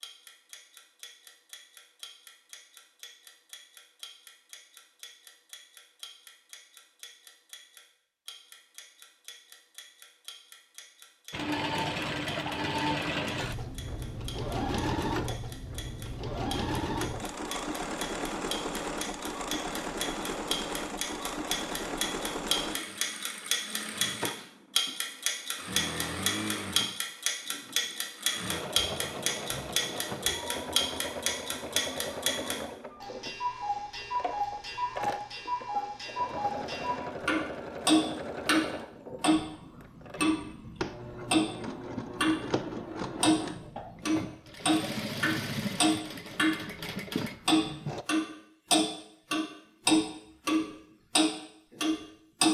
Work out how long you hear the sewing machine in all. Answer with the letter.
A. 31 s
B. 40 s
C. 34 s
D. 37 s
D.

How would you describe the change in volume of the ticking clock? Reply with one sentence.
The volume of the ticking clock goes up.